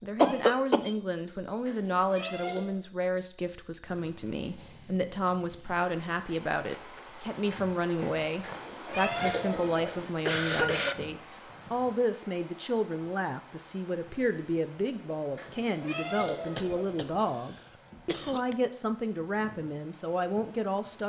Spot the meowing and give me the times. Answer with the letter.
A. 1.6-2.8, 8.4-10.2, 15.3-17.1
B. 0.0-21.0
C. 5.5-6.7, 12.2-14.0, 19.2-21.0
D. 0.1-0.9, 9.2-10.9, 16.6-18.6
A.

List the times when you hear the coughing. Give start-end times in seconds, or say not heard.
0.1-0.9, 9.2-10.9, 16.6-18.6.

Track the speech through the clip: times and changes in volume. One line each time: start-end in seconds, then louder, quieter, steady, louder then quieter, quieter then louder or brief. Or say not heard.
0.0-21.0 steady.